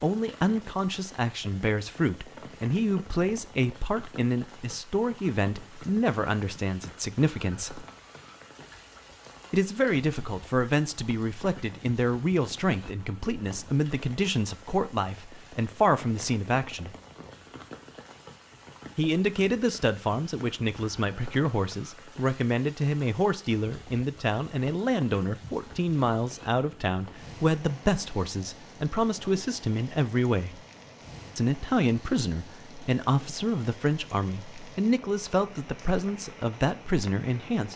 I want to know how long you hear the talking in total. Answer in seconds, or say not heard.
33 s.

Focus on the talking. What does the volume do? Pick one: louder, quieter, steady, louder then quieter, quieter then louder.
steady.